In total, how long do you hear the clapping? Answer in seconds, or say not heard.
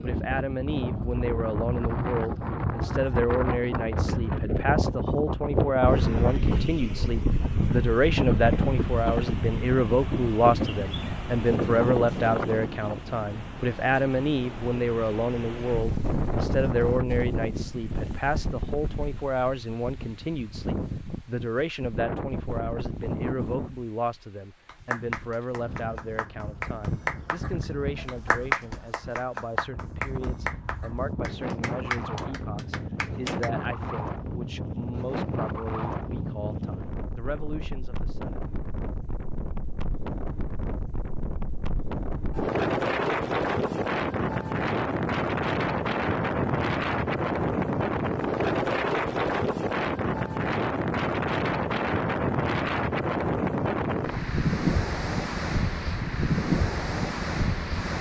9 s.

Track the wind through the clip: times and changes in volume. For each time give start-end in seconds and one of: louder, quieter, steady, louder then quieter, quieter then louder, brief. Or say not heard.
0.0-57.9 quieter then louder.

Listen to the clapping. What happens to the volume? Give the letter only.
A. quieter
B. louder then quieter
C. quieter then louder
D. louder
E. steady
B.